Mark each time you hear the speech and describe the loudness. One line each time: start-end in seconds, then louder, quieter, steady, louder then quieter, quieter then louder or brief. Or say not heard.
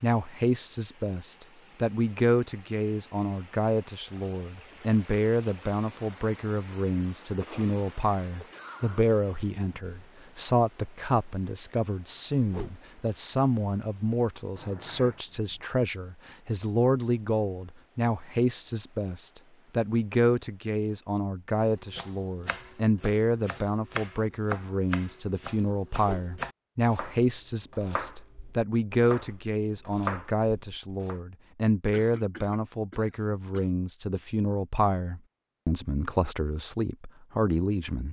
0.0-38.0 steady.